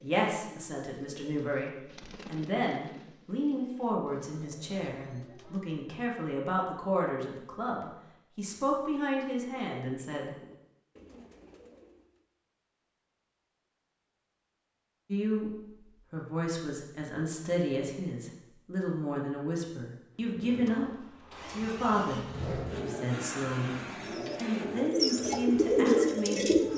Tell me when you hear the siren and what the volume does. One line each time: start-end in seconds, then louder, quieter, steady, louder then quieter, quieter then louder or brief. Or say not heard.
not heard.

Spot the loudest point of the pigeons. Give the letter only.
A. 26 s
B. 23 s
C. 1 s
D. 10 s
A.